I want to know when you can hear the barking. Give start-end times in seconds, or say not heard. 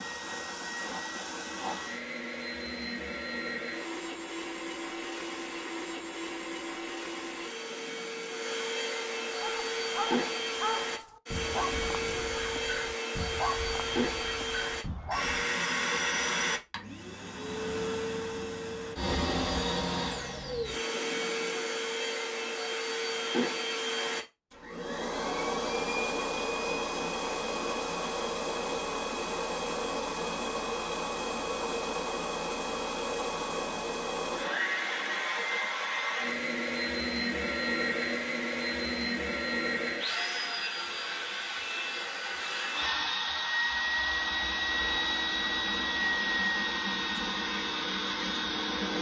9.4-15.4.